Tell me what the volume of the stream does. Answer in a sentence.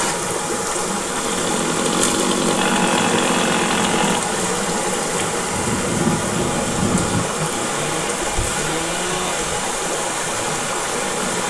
The volume of the stream stays about the same.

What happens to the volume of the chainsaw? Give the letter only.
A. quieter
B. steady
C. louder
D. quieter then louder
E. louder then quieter
A.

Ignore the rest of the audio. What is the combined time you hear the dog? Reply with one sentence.
You can't hear the dog here.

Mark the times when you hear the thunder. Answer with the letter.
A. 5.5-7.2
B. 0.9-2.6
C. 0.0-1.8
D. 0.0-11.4
A.